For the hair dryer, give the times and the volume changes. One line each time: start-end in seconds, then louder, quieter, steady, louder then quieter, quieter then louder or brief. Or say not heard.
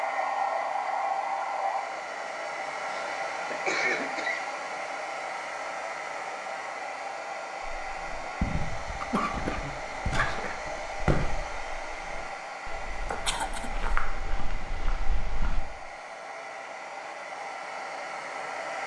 0.0-18.8 quieter.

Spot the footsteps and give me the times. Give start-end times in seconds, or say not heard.
7.8-15.6.